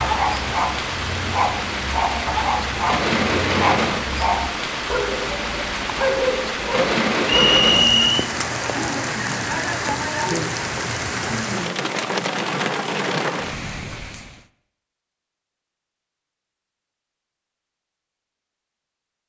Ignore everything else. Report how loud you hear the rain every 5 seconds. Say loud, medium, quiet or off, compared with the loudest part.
loud, loud, loud, off.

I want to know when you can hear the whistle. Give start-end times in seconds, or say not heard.
7.2-8.2.